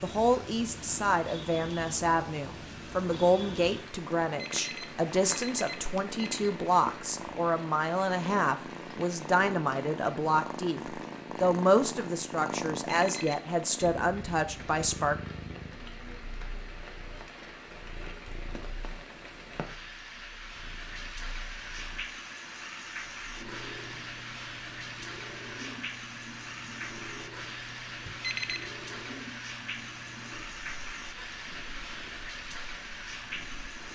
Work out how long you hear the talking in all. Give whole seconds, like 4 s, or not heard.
15 s.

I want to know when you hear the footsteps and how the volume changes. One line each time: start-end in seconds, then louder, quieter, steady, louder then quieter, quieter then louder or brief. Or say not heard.
not heard.